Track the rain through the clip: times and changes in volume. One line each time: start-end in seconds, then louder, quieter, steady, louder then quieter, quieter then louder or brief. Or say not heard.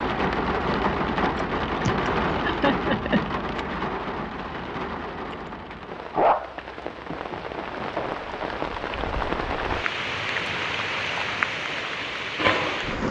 0.0-13.0 quieter then louder.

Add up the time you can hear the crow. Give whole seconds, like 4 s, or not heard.
not heard.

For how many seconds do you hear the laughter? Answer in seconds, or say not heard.
2 s.